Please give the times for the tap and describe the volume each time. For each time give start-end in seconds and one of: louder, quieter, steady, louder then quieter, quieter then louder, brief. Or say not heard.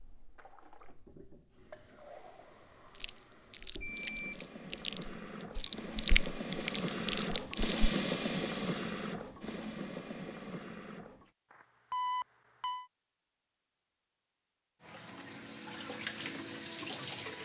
0.0-11.3 louder then quieter
14.8-17.4 brief.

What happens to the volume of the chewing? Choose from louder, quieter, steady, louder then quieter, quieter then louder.
louder.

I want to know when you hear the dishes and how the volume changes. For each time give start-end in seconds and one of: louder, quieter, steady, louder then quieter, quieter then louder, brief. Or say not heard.
not heard.